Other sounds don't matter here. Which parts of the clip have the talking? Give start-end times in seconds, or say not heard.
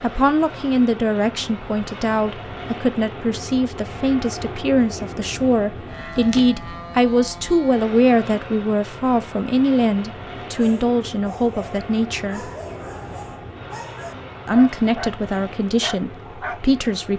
0.0-12.4, 14.4-17.1.